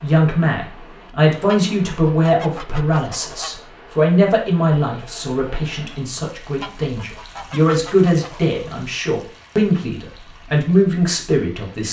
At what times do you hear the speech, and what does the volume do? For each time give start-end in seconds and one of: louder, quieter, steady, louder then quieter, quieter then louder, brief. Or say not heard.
0.0-11.8 quieter then louder.